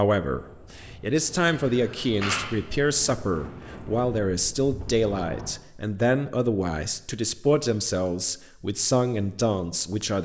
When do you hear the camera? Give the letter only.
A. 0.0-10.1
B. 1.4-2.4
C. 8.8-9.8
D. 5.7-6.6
B.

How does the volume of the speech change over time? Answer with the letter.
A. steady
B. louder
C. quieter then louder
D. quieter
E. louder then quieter
A.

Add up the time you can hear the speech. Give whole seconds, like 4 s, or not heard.
10 s.